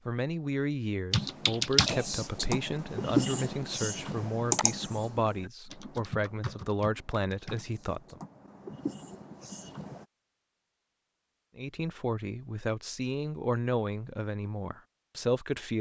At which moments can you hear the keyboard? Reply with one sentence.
The keyboard can be heard from 1.1 to 10.1 s.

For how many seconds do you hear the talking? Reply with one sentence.
You can hear the talking for 12 seconds altogether.